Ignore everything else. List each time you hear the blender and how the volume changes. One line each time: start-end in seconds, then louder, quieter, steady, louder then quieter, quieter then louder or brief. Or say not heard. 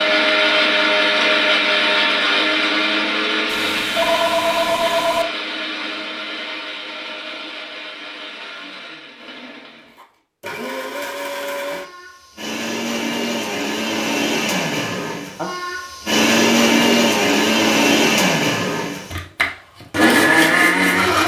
0.0-21.2 quieter then louder.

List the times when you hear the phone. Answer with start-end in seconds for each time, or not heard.
3.5-5.2.